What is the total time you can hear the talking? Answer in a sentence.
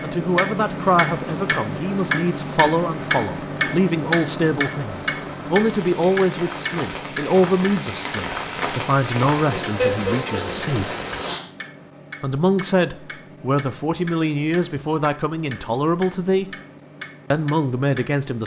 The talking can be heard for 16 seconds in total.